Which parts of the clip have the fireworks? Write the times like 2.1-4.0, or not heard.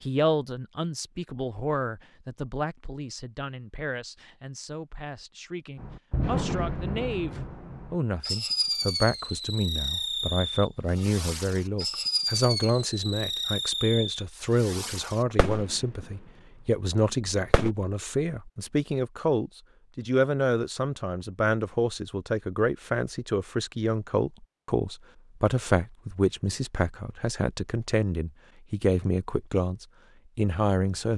5.8-16.1, 17.2-17.8.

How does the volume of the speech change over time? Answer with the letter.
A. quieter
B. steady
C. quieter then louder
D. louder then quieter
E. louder
E.